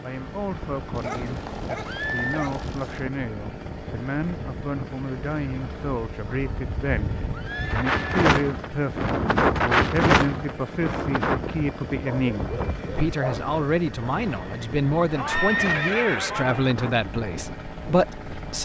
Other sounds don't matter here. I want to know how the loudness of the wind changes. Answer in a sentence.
The loudness of the wind goes up, then down.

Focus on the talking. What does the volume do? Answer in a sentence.
The volume of the talking goes up.